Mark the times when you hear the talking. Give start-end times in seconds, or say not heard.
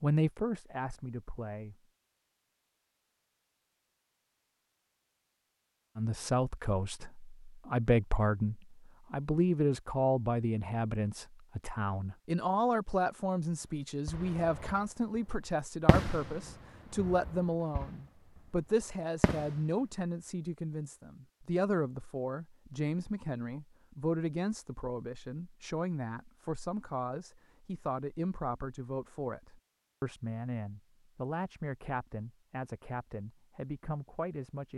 0.0-1.9, 6.0-34.7.